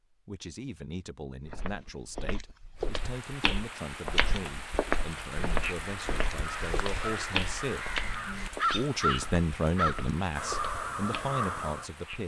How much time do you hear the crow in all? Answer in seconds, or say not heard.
6 s.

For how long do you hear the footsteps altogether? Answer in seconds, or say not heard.
10 s.